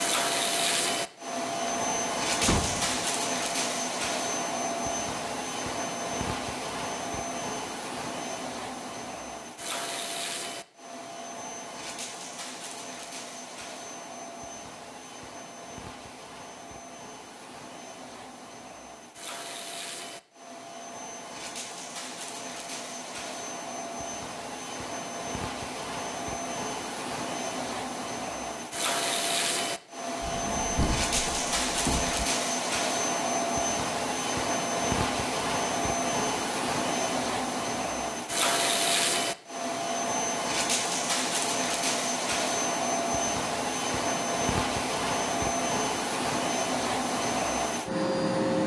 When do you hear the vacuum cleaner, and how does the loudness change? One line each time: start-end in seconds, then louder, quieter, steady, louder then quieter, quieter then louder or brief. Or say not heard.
0.0-48.6 quieter then louder.